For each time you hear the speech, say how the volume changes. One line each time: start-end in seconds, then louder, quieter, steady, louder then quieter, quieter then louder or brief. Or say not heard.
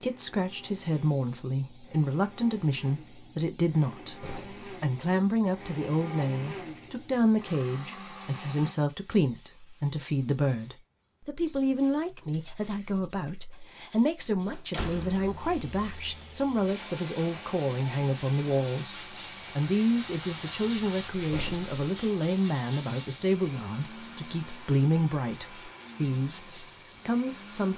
0.0-27.7 steady.